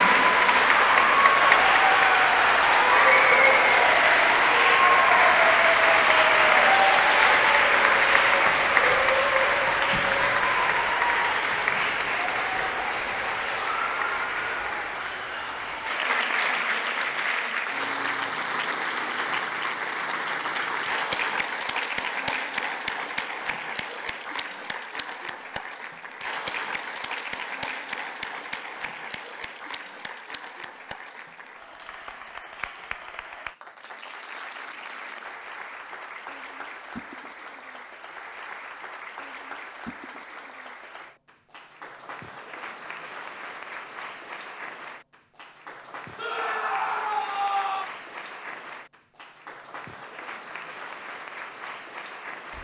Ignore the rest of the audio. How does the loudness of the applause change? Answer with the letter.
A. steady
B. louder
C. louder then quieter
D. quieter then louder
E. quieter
E.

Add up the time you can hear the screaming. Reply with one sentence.
The screaming can be heard for 2 seconds in total.